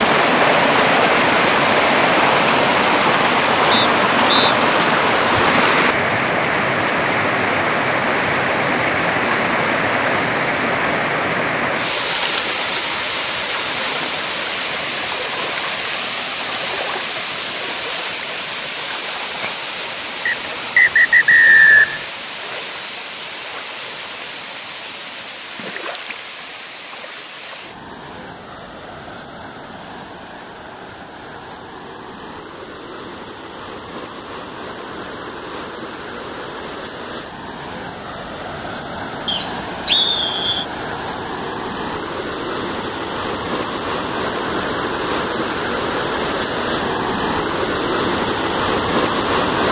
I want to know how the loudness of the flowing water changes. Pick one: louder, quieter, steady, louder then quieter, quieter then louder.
quieter then louder.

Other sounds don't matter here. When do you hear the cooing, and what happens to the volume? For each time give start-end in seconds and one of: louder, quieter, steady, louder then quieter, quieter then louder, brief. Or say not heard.
not heard.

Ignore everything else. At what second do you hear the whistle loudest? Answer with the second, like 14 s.
22 s.